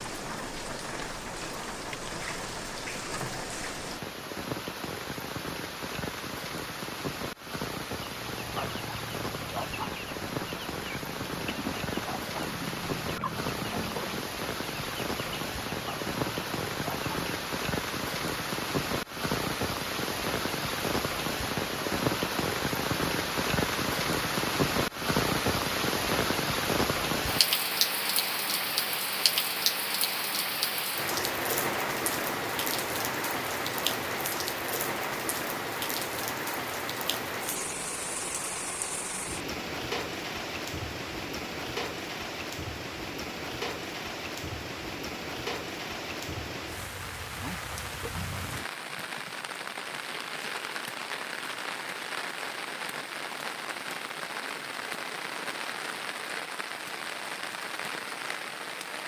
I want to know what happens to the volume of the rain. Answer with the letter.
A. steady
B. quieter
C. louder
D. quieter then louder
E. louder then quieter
E.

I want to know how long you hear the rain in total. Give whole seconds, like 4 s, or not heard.
59 s.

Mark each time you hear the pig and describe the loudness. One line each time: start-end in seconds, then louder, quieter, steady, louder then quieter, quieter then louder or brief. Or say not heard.
not heard.